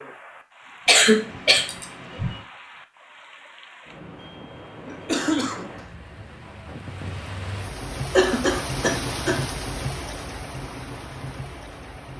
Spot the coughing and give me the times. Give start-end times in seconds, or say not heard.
0.8-2.3, 4.8-5.7, 8.1-9.4.